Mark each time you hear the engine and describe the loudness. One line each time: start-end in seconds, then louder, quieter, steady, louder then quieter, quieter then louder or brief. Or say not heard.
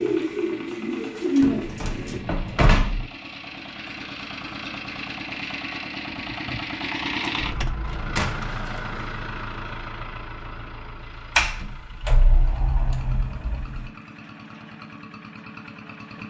0.0-16.2 louder then quieter.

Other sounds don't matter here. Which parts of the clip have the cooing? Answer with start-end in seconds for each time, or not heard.
0.0-2.2.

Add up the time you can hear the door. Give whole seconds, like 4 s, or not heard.
6 s.